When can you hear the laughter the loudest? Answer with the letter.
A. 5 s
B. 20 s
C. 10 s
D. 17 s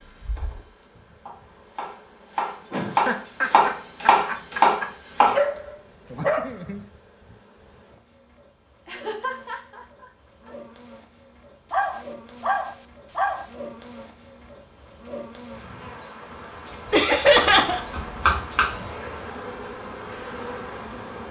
D.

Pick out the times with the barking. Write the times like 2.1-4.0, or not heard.
5.3-6.8, 11.7-13.4.